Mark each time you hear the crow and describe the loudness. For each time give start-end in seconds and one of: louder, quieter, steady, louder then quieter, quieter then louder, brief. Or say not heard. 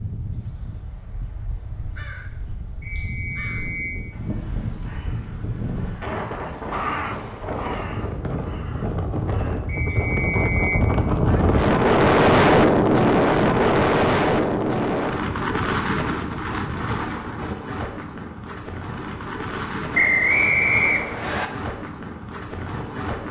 1.5-9.6 louder then quieter.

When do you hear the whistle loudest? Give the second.
20 s.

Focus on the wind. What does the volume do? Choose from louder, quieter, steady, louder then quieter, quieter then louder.
louder then quieter.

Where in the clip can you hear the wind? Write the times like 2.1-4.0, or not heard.
0.0-23.2.